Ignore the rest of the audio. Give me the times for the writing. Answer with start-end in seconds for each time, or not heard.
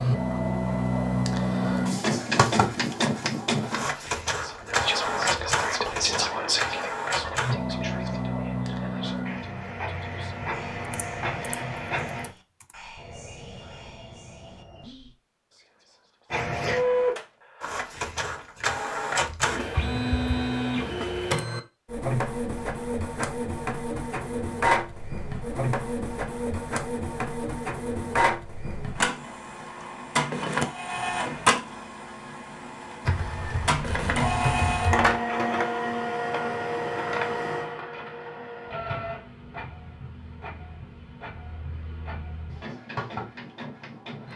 not heard.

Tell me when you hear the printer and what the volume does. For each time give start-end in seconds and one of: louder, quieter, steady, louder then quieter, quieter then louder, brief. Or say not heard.
0.0-12.3 quieter
16.3-44.3 quieter.